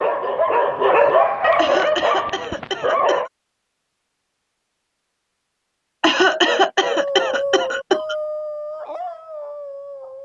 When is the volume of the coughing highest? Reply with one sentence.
The volume of the coughing peaks at 6 seconds.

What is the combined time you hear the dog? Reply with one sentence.
You can hear the dog for 7 seconds altogether.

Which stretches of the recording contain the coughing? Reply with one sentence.
You can hear the coughing from 1.6 to 3.3 s and from 6.0 to 8.2 s.